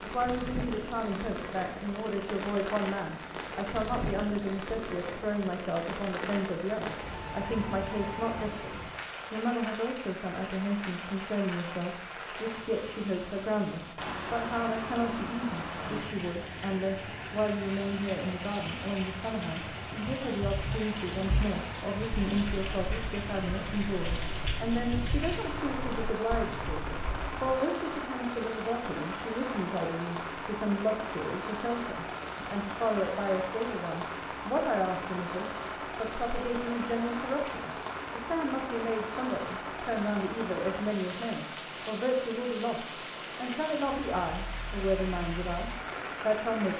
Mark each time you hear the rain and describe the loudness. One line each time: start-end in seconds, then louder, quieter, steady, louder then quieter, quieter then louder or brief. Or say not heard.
0.0-46.7 steady.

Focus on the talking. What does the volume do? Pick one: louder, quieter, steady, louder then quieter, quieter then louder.
steady.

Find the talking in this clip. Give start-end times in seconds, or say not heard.
0.0-46.7.